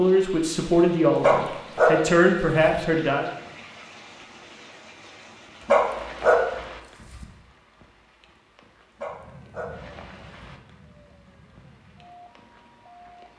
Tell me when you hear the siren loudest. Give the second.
10 s.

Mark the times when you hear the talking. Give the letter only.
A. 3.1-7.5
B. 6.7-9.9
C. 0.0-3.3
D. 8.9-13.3
C.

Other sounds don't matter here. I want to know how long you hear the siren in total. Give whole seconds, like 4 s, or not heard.
4 s.